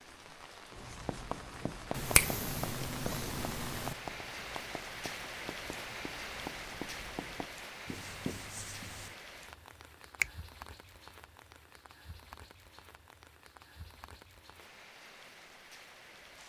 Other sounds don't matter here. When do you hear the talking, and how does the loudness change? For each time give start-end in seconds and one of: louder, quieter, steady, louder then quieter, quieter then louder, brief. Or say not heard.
not heard.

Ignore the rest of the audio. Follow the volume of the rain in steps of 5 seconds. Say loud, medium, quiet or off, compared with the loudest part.
loud, loud, medium, medium.